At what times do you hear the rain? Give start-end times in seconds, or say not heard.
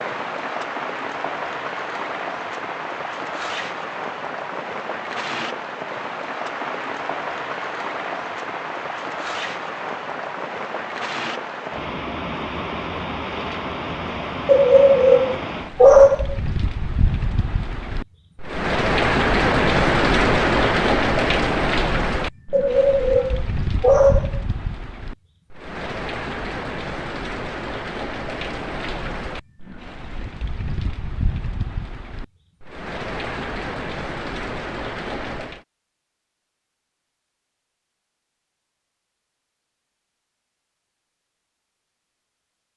0.0-35.6.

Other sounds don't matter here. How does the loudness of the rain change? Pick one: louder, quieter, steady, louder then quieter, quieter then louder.
louder then quieter.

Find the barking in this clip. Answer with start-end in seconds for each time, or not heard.
14.4-16.4, 22.5-24.4.